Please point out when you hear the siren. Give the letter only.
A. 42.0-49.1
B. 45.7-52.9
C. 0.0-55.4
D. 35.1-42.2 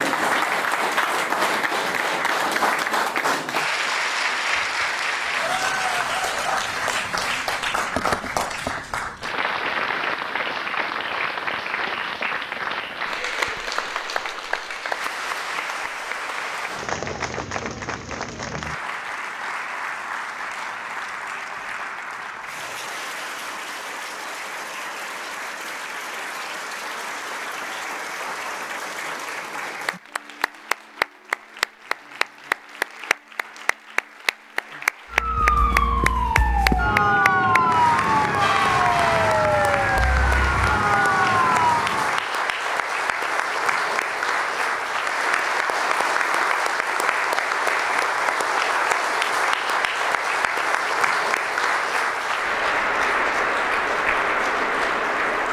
D.